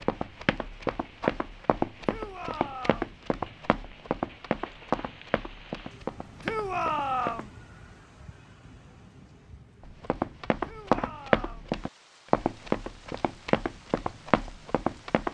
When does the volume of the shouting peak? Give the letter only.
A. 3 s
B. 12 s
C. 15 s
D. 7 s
D.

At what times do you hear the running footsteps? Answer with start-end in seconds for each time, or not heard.
0.0-7.5, 9.8-15.2.